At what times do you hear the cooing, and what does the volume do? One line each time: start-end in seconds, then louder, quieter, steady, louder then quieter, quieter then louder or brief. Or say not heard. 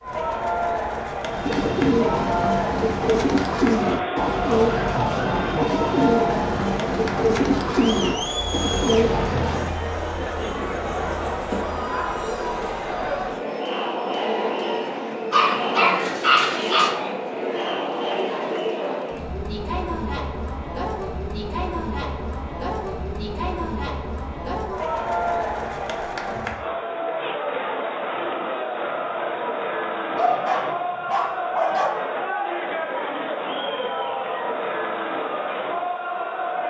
1.2-9.8 steady.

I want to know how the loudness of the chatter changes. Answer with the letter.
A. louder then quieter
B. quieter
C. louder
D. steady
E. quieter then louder
D.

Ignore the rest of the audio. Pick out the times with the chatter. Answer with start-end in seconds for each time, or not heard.
0.0-36.6.